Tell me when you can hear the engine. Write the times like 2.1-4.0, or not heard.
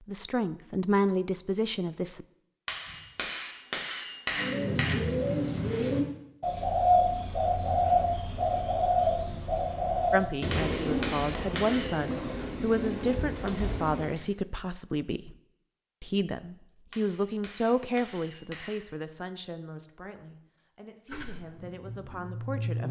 21.1-22.8.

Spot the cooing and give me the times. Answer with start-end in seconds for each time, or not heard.
4.3-14.2.